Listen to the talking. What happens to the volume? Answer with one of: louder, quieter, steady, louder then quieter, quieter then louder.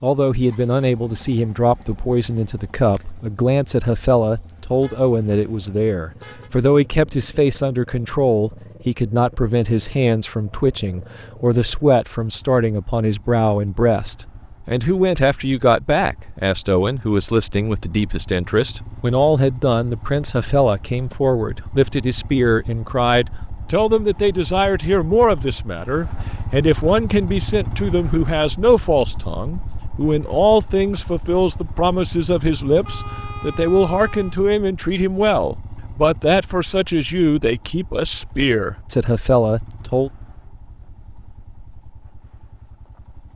steady.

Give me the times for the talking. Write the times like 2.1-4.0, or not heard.
0.0-40.1.